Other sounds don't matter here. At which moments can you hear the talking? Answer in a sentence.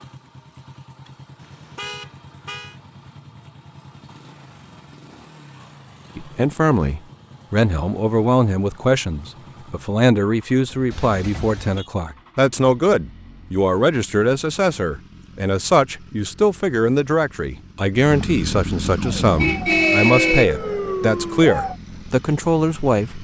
The talking can be heard from 6.2 to 23.1 s.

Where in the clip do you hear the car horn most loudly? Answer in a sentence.
The volume of the car horn peaks at 20 seconds.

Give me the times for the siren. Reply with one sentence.
You can hear the siren from 18.9 to 21.8 s.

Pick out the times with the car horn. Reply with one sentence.
The car horn can be heard from 1.4 to 2.8 s, from 10.9 to 11.9 s and from 19.4 to 20.4 s.